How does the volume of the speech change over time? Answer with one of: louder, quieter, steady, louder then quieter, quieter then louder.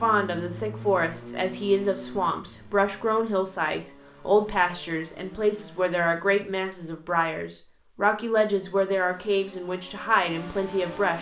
steady.